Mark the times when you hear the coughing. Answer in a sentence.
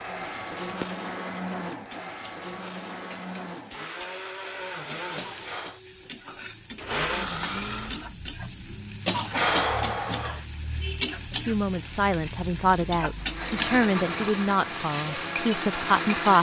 The coughing can be heard from 5.2 to 5.8 s and from 9.1 to 10.4 s.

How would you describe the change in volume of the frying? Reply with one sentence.
The volume of the frying goes up.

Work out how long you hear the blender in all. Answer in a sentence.
You can hear the blender for 11 seconds altogether.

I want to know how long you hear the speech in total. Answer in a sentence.
The speech can be heard for 5 seconds in total.